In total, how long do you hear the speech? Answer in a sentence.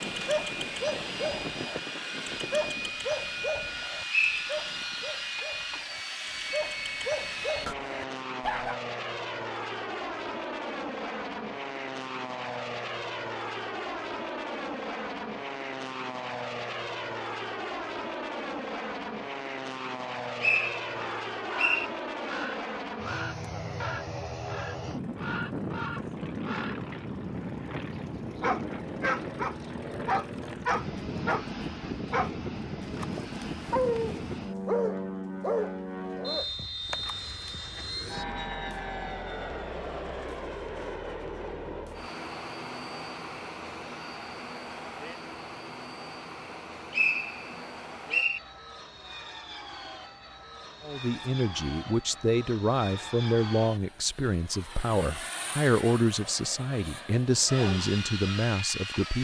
You can hear the speech for 8 seconds altogether.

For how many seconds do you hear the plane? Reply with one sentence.
You can hear the plane for 59 seconds altogether.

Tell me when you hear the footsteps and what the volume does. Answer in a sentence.
You can't hear the footsteps here.